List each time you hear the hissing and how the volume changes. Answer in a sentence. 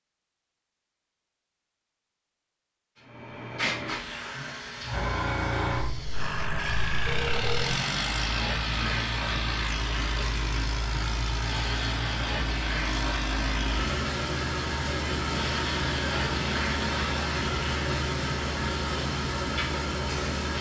You can hear the hissing from 3.1 to 20.4 s, at a steady volume.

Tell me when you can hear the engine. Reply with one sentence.
You can hear the engine from 6.1 to 20.5 s.